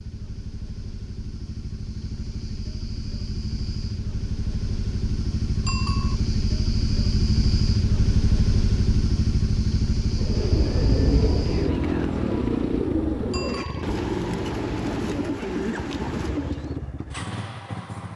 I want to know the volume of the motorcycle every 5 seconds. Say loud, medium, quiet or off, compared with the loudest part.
medium, loud, loud, medium.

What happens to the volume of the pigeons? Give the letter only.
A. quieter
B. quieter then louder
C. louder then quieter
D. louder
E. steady
E.